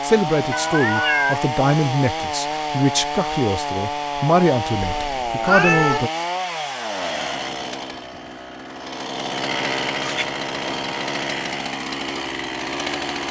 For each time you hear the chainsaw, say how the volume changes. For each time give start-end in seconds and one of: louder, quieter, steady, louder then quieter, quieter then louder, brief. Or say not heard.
0.0-13.2 steady.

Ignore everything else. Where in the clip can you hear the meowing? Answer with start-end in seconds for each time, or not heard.
0.5-1.4, 4.8-6.0, 10.0-10.8.